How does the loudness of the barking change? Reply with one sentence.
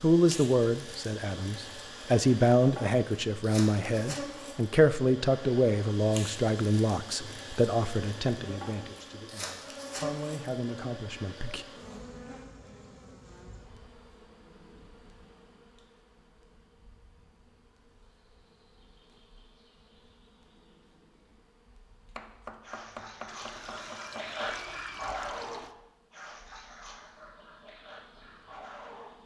The loudness of the barking goes up, then down.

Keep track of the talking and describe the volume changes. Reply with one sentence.
The volume of the talking goes down.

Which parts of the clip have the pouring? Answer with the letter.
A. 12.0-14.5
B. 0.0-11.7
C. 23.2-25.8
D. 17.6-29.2
C.